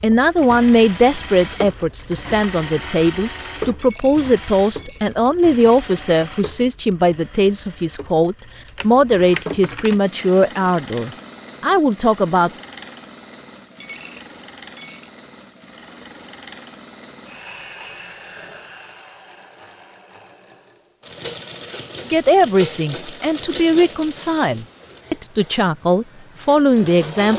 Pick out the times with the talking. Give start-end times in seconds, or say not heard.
0.0-12.5, 22.1-27.3.